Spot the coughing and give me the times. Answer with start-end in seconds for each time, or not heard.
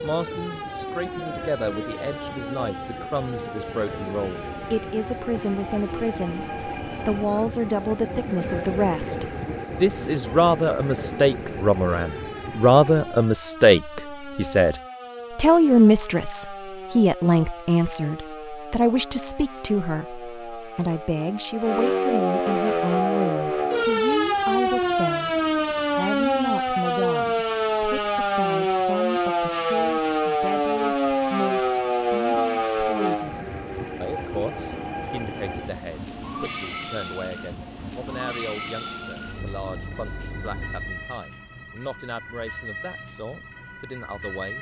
not heard.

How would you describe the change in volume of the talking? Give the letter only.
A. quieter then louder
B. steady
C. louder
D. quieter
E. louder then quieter
E.